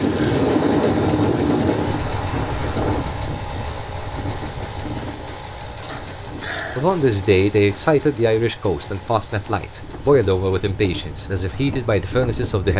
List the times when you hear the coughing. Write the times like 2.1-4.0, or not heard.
5.8-7.0.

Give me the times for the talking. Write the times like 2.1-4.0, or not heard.
6.8-12.7.